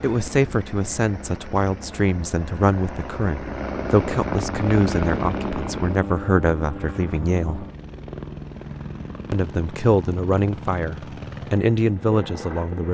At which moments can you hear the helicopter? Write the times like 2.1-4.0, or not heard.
0.0-12.9.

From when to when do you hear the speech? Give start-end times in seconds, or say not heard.
0.0-7.7, 9.3-12.9.